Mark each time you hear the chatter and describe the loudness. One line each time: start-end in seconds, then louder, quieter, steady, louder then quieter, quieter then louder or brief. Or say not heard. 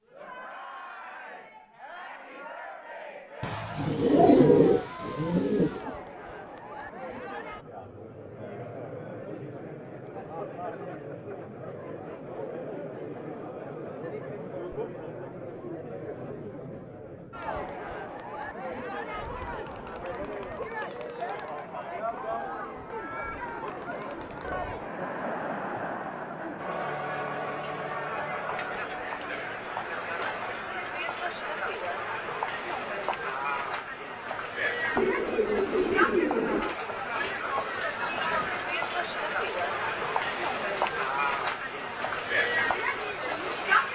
0.1-43.9 louder.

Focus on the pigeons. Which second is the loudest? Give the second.
4 s.